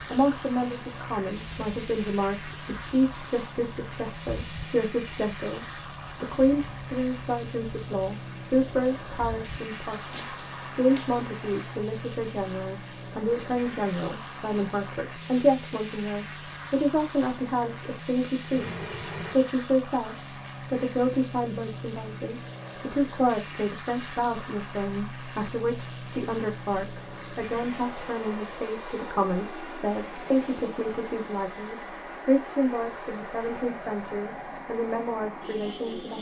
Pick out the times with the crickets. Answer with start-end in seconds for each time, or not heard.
0.0-19.4.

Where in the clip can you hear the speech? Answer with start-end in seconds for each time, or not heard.
0.1-36.1.